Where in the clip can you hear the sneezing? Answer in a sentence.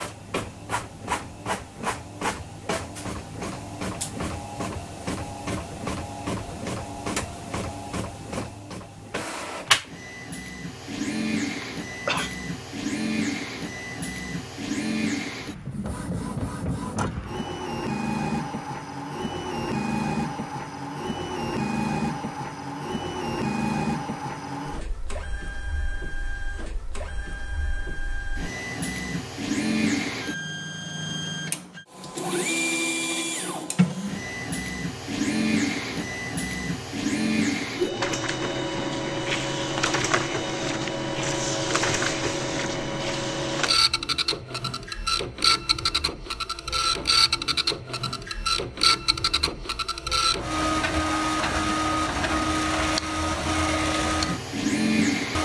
You can hear the sneezing from 11.6 to 12.3 s.